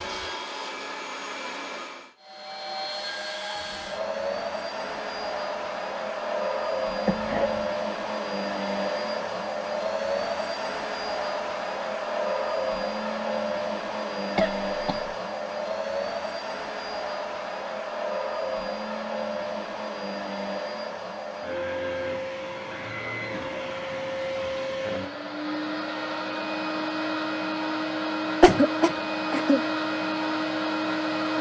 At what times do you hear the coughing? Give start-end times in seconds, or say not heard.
7.0-7.7, 14.3-15.1, 28.4-29.6.